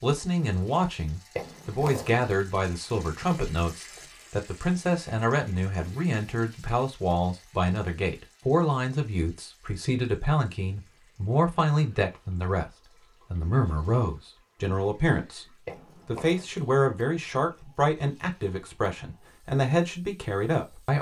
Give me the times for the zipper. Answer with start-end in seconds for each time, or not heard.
1.4-2.2, 15.7-16.4.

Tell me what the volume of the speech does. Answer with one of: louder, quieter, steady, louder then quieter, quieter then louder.
steady.